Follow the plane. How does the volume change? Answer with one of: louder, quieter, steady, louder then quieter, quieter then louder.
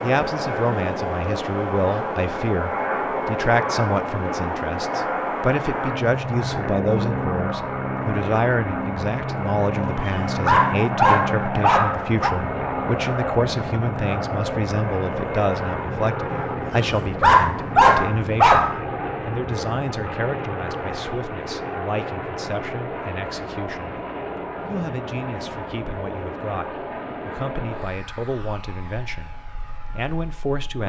quieter.